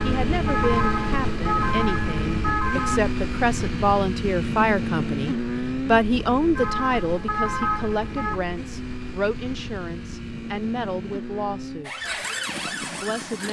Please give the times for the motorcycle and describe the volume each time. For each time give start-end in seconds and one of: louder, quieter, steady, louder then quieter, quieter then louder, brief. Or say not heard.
0.0-13.4 quieter.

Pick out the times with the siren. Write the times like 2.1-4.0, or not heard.
0.0-3.0, 6.5-8.4, 11.8-13.4.